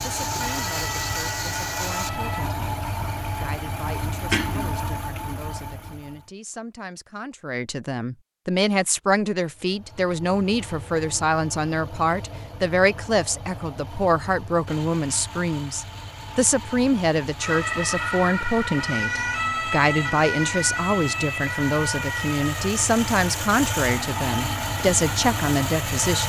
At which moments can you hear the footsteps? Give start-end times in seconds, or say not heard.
not heard.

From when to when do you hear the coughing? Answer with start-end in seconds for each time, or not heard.
4.3-5.2.